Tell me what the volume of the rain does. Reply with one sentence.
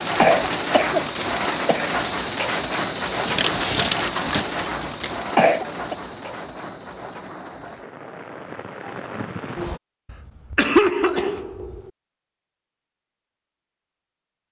The loudness of the rain goes down.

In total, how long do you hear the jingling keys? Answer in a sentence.
You can hear the jingling keys for 2 seconds altogether.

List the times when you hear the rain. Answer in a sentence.
You can hear the rain from 0.0 to 9.8 s.